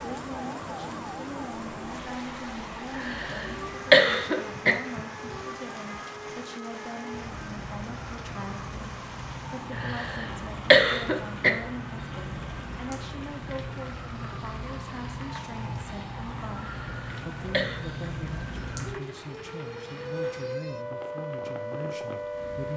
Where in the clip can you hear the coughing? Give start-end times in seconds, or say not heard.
3.0-4.8, 9.8-11.5, 16.6-17.8.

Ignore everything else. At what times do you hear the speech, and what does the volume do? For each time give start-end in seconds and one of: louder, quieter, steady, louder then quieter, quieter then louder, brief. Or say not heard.
0.0-22.7 steady.